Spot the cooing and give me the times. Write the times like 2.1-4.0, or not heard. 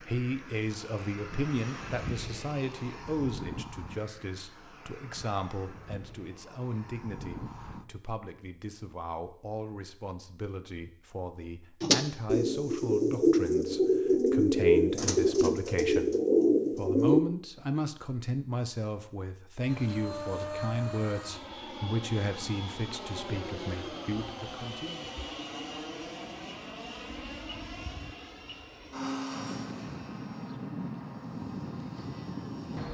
11.8-17.2.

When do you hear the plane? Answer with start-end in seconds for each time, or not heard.
0.0-8.0, 19.6-32.8.